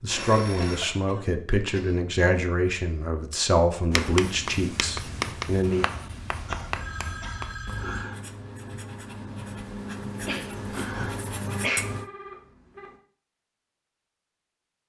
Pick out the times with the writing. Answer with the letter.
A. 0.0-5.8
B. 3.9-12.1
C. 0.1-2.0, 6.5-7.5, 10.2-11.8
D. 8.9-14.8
B.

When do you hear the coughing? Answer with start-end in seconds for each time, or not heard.
0.1-2.0, 6.5-7.5, 10.2-11.8.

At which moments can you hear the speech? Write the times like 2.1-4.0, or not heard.
0.0-5.8.